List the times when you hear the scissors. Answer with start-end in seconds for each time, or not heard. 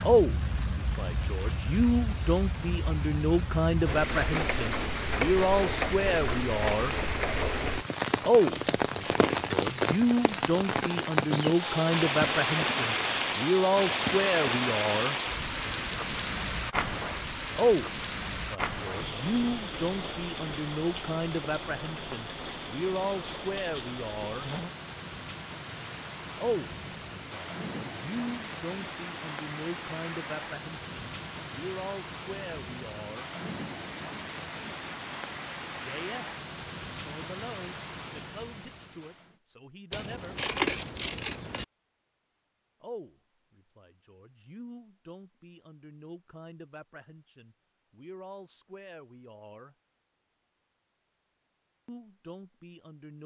8.6-10.3, 39.9-41.6.